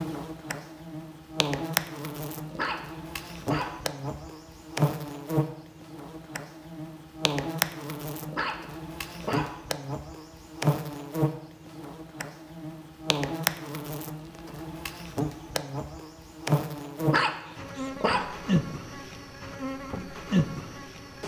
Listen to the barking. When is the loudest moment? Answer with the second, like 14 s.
17 s.